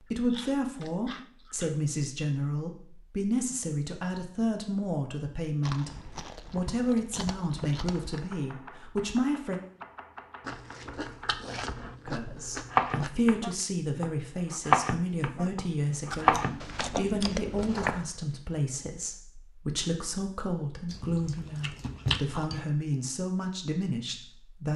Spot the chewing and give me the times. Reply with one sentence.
You can hear the chewing from 0.3 to 1.8 s, from 5.6 to 8.2 s, from 10.4 to 13.2 s, from 16.1 to 18.1 s and from 20.9 to 22.6 s.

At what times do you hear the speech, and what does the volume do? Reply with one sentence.
The speech can be heard from 0.0 to 9.6 s, at a steady volume; and from 12.1 to 24.7 s, at a steady volume.